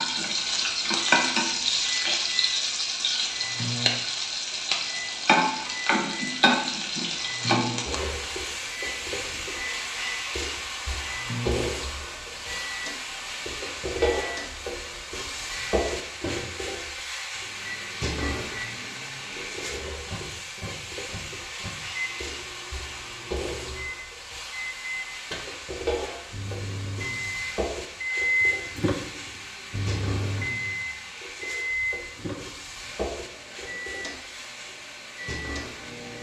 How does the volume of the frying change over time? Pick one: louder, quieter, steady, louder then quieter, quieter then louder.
quieter.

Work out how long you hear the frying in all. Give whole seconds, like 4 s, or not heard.
36 s.